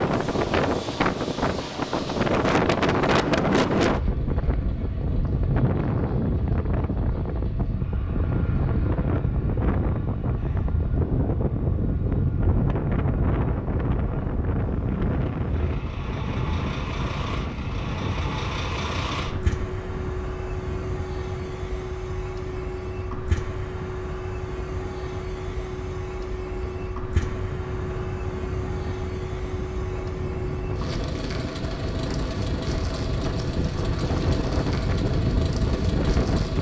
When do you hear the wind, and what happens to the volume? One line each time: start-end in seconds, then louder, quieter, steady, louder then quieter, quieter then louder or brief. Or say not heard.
0.0-36.5 quieter then louder.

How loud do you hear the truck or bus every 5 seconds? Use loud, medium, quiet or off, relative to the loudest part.
medium, quiet, quiet, loud, loud, loud, loud, loud.